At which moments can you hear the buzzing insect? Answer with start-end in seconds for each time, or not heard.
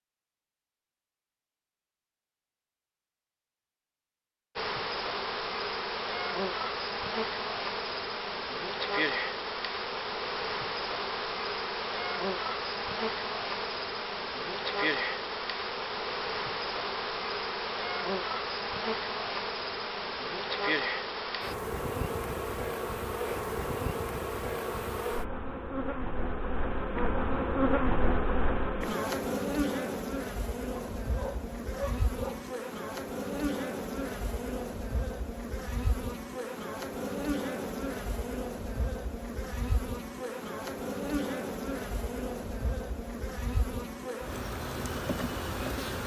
4.5-46.0.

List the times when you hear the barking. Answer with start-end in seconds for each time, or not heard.
30.8-32.5.